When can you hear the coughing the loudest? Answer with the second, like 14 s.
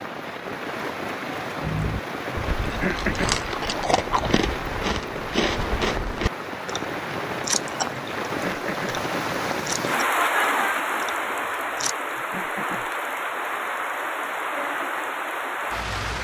3 s.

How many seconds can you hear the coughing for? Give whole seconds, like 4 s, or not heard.
3 s.